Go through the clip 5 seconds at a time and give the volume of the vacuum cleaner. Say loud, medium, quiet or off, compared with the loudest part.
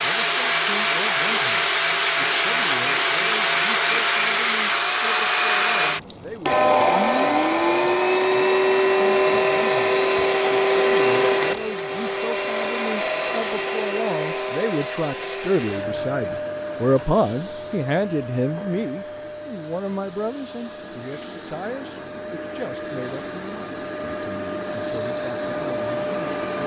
loud, loud, loud, quiet, quiet, medium.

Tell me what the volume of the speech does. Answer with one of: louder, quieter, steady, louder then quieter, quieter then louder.
louder then quieter.